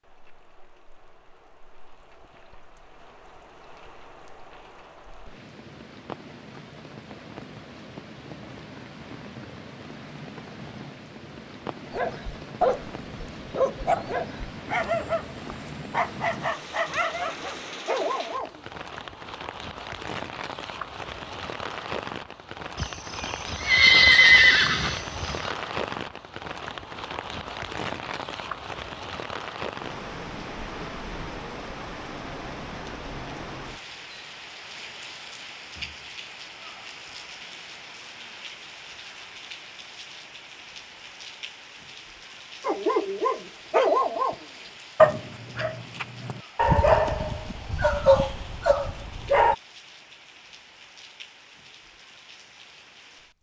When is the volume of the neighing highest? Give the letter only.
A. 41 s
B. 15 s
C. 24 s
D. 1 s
C.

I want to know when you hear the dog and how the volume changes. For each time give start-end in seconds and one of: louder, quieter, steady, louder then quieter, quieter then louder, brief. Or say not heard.
11.9-18.6 steady
42.6-44.4 brief
45.0-49.5 louder then quieter.